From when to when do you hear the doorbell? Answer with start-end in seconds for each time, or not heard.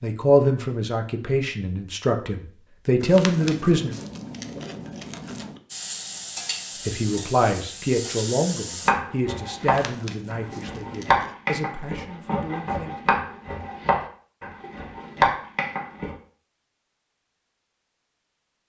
not heard.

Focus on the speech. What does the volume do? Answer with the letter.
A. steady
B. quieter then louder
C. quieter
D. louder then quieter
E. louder
C.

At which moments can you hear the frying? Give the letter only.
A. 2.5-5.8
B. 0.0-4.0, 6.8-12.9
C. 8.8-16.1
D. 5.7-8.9
D.